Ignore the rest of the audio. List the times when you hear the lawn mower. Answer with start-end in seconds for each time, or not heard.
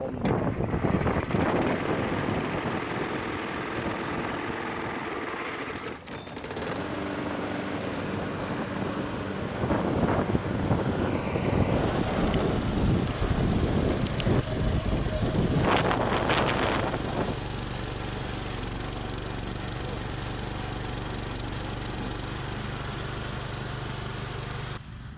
0.1-25.1.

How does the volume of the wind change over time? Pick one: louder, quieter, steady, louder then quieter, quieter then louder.
quieter then louder.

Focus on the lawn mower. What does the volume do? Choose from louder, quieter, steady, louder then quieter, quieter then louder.
steady.